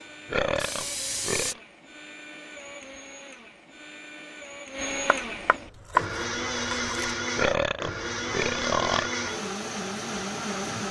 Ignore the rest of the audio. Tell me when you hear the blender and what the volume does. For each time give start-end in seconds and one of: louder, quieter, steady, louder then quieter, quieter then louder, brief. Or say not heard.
0.0-10.8 louder.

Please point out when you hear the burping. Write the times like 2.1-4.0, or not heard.
0.2-1.6, 7.3-9.1.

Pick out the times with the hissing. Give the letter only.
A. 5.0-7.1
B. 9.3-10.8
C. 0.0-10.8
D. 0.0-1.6
D.